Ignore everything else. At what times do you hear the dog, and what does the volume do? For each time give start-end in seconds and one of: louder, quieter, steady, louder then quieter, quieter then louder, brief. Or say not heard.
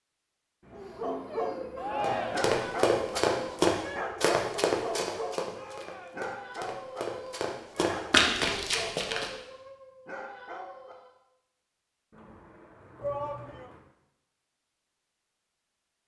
0.7-11.2 quieter.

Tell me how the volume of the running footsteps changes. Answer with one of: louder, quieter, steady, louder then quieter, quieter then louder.
quieter then louder.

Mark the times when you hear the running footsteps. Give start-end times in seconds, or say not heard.
2.0-9.3.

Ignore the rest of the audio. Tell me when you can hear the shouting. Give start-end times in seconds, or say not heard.
1.8-2.5, 5.5-6.3, 13.0-13.7.